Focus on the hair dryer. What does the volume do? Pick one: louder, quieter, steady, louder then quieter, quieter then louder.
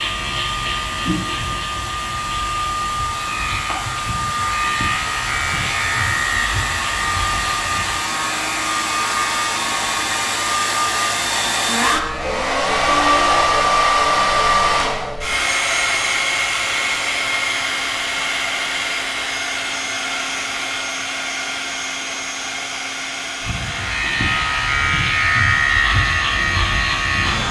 louder then quieter.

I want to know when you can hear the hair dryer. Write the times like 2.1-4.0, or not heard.
0.0-27.4.